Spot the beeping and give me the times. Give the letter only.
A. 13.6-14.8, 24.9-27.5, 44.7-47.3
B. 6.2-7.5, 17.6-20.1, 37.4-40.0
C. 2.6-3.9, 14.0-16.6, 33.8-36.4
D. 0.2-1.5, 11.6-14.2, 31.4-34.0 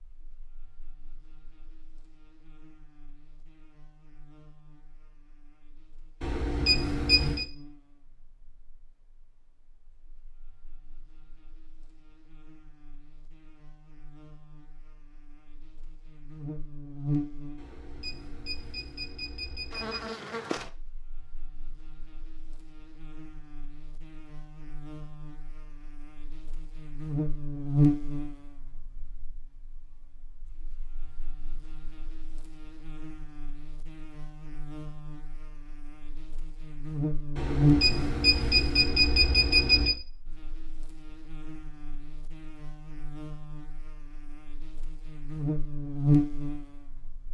B.